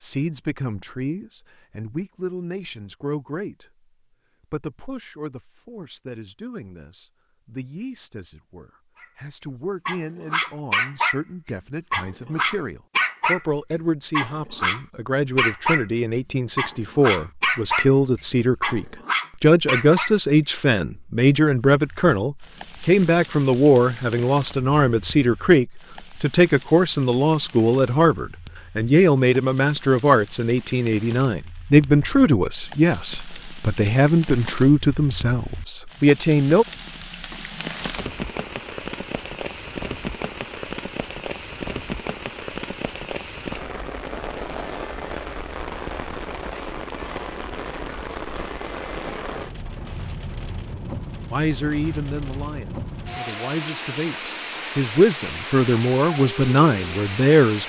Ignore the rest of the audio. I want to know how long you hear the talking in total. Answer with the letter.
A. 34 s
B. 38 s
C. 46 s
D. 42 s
D.